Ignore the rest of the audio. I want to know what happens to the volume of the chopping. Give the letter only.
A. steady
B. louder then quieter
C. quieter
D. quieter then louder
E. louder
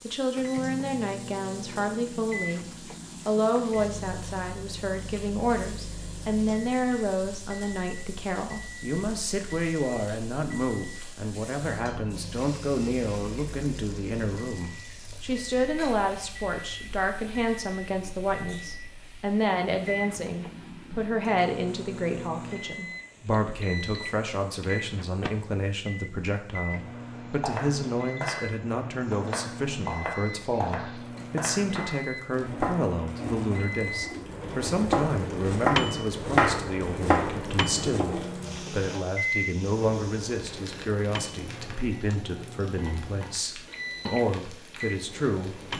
E.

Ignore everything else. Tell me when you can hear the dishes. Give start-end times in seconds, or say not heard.
not heard.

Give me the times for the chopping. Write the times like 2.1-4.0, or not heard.
27.2-38.5.